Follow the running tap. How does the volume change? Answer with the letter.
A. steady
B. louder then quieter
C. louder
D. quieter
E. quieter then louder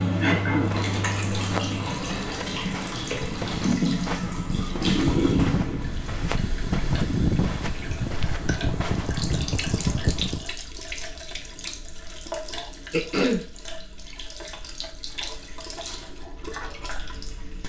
D.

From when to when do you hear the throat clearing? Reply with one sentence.
The throat clearing can be heard from 0.2 to 0.8 s and from 12.9 to 13.4 s.